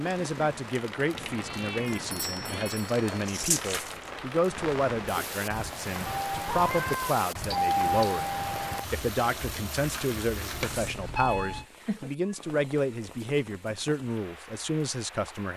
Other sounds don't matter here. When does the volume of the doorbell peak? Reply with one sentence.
The volume of the doorbell peaks at 8 seconds.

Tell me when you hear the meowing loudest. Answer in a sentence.
The volume of the meowing peaks at 7 seconds.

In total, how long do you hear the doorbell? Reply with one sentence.
The doorbell can be heard for 4 seconds in total.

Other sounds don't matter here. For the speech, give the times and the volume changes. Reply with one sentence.
The speech can be heard from 0.0 to 15.5 s, at a steady volume.